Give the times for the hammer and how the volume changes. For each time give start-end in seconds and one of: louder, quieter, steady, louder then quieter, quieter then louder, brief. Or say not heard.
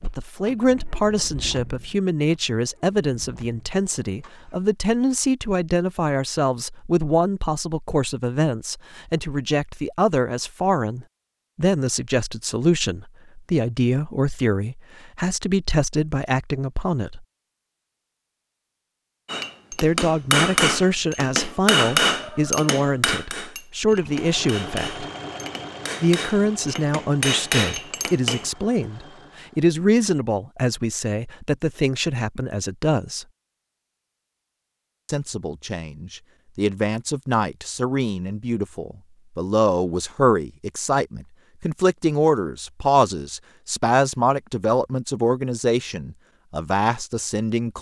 19.2-28.4 quieter then louder.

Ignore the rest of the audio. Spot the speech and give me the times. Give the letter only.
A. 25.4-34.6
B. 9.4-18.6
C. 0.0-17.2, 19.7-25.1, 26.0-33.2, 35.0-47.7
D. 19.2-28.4
C.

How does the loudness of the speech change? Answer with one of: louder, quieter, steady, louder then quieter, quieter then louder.
steady.